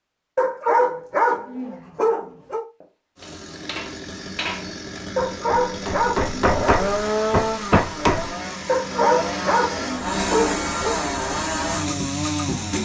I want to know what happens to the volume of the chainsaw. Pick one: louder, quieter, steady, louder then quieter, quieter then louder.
louder.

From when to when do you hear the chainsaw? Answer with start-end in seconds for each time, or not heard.
3.1-12.8.